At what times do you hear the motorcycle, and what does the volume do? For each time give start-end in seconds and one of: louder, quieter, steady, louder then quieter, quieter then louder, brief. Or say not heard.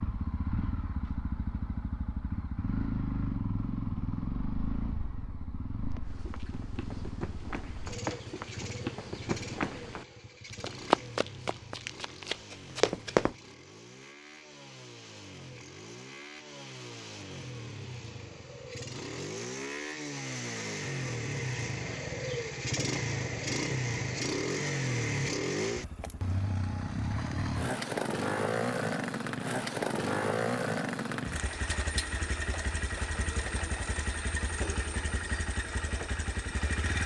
0.0-37.0 quieter then louder.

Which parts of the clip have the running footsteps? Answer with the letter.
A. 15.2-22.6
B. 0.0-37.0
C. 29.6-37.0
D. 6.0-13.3
D.